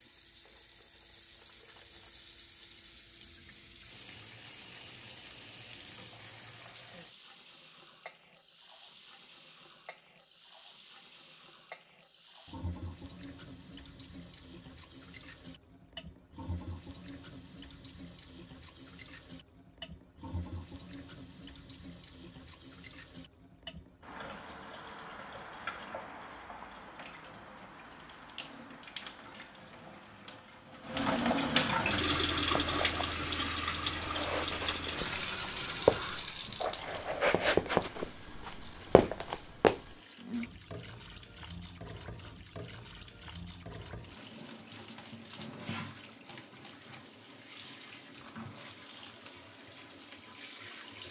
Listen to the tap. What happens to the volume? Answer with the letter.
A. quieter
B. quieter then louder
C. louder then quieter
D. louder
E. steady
C.